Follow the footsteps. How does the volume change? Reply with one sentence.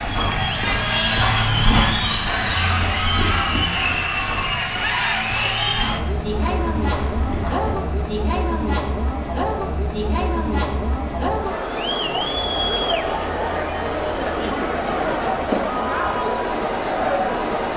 The volume of the footsteps goes down.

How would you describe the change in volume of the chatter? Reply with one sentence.
The loudness of the chatter stays about the same.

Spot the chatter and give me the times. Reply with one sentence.
You can hear the chatter from 0.0 to 17.7 s.